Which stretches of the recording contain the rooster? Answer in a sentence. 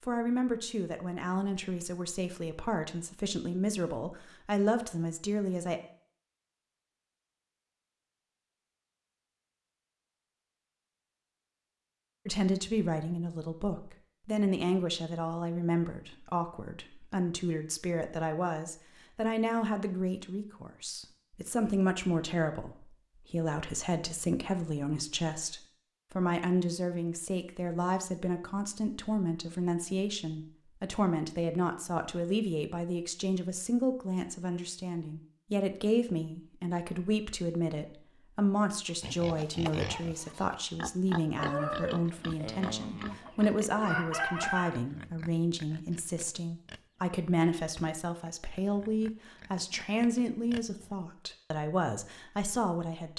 The rooster can be heard from 41.4 to 44.8 s.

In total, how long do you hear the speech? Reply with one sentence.
The speech can be heard for 47 seconds in total.